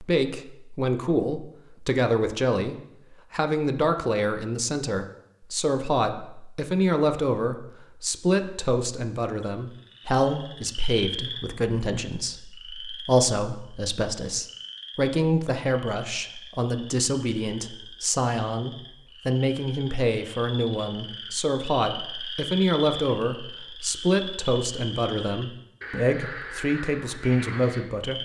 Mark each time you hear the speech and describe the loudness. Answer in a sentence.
The speech can be heard from 0.0 to 28.2 s, at a steady volume.